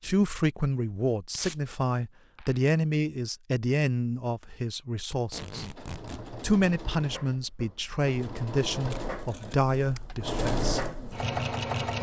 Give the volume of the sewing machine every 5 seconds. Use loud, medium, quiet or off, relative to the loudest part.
off, medium, loud.